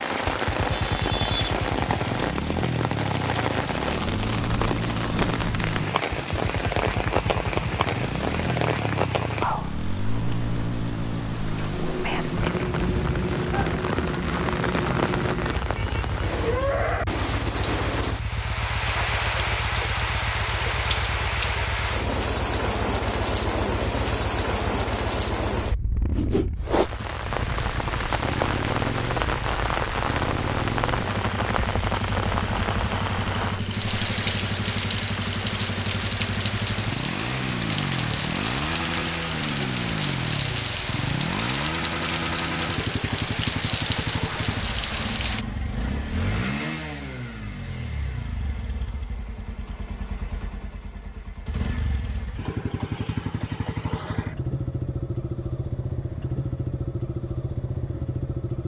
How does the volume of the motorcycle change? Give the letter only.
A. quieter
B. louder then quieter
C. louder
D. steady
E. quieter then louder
D.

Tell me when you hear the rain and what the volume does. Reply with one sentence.
You can hear the rain from 0.0 to 45.5 s, at a steady volume.